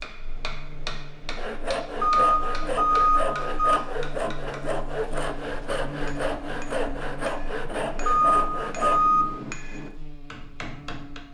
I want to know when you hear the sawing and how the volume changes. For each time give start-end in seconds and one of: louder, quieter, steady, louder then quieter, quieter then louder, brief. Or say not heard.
1.4-9.0 steady.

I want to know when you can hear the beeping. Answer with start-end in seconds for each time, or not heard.
2.0-3.8, 8.1-9.4.